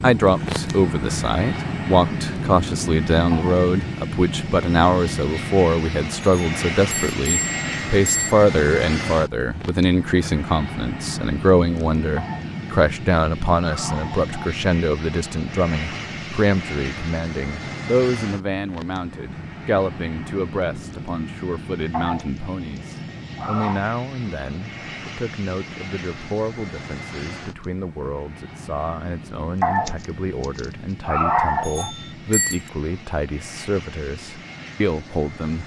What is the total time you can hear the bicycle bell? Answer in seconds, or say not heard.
3 s.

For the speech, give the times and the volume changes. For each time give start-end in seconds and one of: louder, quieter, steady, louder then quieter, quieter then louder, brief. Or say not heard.
0.0-35.6 quieter.